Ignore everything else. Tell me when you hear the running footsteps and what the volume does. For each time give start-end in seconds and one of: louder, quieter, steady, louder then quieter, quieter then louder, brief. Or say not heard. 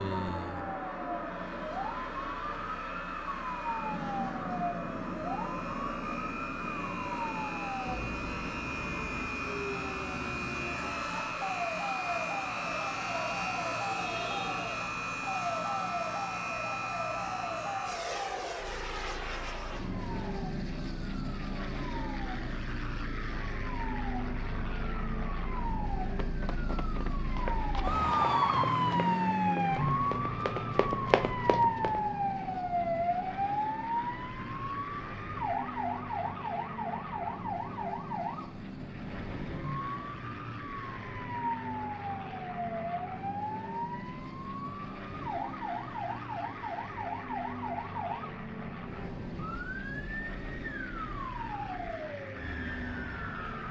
26.2-32.0 louder.